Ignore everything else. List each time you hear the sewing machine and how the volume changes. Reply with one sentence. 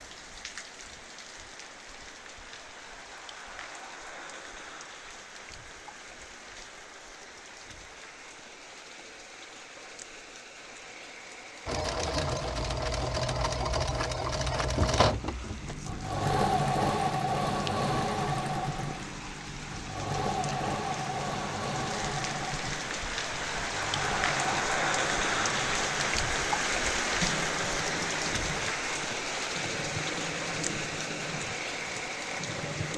The sewing machine can be heard from 11.7 to 32.9 s, getting quieter.